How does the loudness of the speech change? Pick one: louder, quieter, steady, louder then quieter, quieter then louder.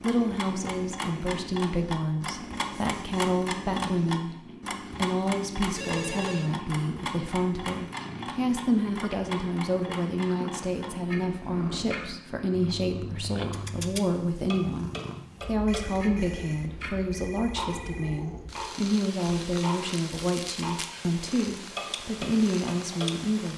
steady.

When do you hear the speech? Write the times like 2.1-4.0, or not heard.
0.0-4.3, 5.0-23.5.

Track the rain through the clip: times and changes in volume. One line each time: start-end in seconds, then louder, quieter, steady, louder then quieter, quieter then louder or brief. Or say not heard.
not heard.